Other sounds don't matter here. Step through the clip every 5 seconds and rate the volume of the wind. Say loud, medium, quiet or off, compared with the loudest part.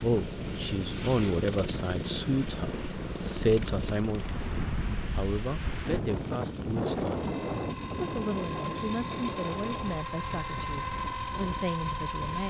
medium, loud, medium.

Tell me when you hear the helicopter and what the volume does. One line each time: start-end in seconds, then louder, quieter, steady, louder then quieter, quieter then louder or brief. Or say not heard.
0.0-12.4 quieter then louder.